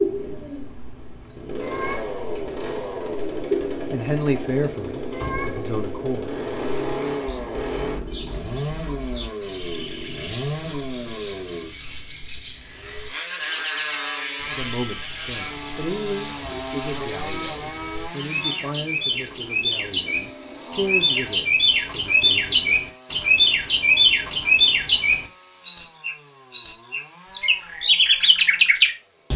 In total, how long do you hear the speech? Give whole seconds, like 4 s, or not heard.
11 s.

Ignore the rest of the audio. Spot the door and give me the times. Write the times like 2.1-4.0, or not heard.
5.1-5.6, 16.3-16.8.